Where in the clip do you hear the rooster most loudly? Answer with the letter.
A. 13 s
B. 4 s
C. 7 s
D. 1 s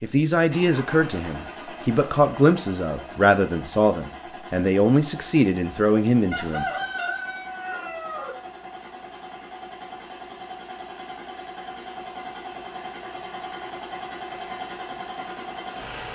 C.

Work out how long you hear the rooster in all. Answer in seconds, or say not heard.
2 s.